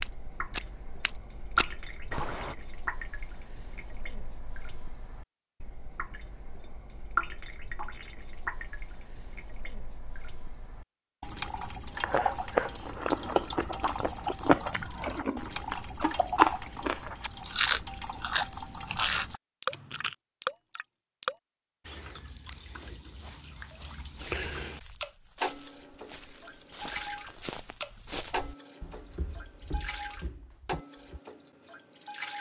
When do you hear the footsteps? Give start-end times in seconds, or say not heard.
0.0-2.5, 24.0-31.2.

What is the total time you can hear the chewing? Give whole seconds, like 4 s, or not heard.
8 s.